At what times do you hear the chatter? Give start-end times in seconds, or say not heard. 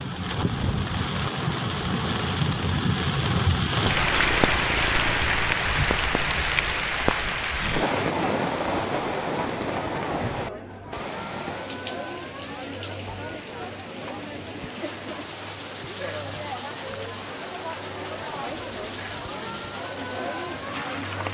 8.0-21.3.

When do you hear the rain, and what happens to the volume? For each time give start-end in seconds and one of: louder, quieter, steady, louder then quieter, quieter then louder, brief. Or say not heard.
0.0-21.3 quieter.